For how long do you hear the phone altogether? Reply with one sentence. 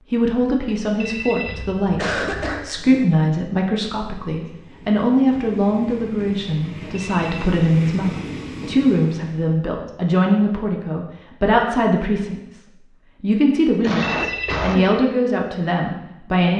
The phone can be heard for 3 seconds in total.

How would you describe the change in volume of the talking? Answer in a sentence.
The loudness of the talking stays about the same.